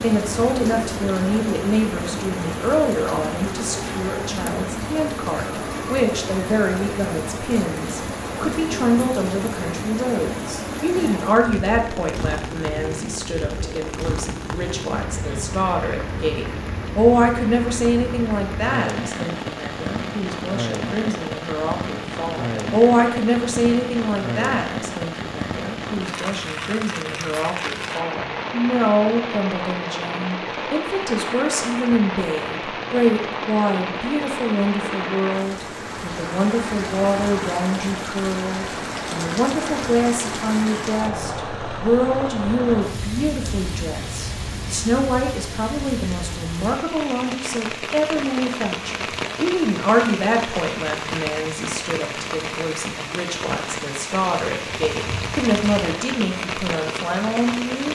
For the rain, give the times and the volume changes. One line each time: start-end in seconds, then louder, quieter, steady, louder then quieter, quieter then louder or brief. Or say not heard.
0.0-57.8 steady.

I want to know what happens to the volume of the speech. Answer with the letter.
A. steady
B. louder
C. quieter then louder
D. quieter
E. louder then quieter
A.